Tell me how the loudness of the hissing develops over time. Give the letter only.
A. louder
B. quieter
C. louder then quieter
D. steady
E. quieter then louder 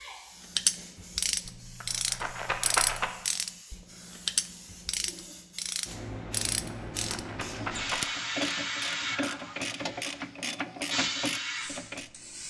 A.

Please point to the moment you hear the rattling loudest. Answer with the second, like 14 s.
3 s.